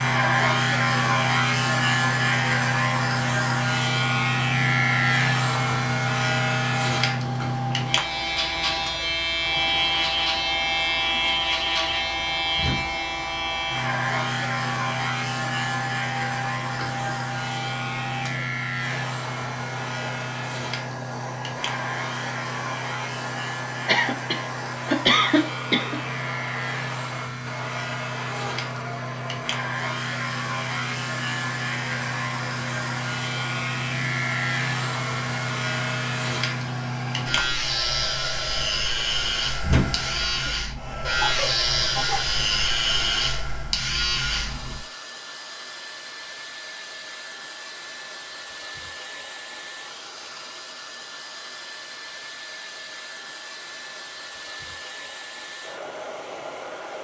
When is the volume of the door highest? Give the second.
40 s.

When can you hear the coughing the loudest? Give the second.
25 s.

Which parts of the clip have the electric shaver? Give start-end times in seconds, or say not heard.
0.0-44.9.